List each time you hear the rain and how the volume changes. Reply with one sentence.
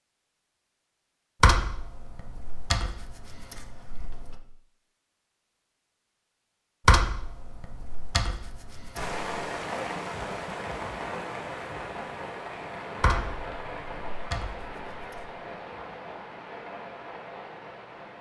You can hear the rain from 8.9 to 18.1 s, getting quieter.